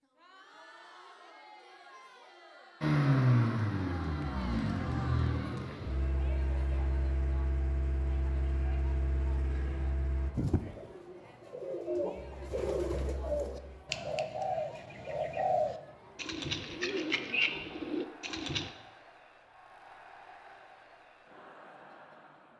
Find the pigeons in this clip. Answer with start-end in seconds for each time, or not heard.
10.3-18.7.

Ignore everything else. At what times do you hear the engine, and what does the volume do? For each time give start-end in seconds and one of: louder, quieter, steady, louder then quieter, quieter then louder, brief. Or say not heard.
2.8-10.3 quieter
12.2-13.8 brief.